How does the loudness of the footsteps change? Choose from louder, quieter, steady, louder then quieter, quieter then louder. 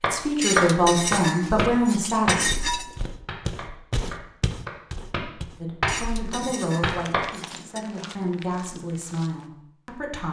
quieter.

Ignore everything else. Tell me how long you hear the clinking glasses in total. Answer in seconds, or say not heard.
5 s.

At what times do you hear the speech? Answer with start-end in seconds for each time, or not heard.
0.1-2.5, 5.6-10.2.